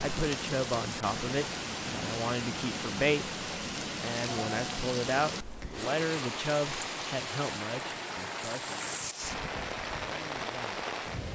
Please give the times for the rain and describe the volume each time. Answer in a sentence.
The rain can be heard from 0.0 to 11.3 s, at a steady volume.